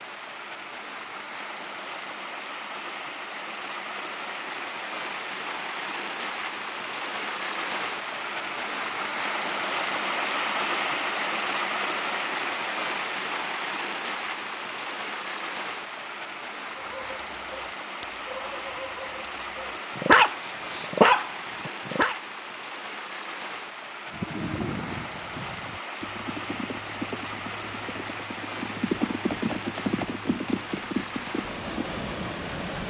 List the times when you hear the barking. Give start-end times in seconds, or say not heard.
16.8-22.1.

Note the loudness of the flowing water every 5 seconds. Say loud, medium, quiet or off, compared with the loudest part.
medium, loud, loud, medium, medium, medium, medium.